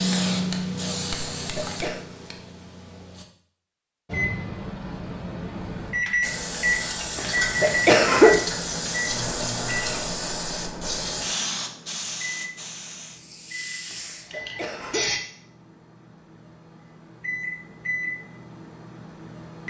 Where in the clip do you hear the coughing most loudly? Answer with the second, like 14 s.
8 s.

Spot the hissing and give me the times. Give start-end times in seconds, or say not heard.
0.0-3.2, 6.2-15.2.